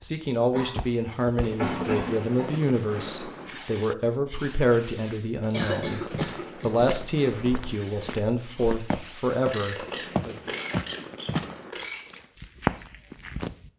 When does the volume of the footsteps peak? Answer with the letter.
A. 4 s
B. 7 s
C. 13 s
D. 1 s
C.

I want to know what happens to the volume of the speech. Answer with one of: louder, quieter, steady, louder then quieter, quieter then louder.
steady.